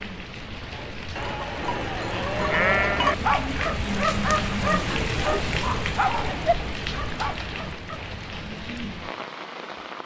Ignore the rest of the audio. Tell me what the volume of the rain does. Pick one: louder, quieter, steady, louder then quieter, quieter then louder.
louder then quieter.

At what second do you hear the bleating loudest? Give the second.
3 s.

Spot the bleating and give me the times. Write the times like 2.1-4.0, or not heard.
1.1-3.1.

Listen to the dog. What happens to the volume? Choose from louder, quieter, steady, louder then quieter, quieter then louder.
quieter.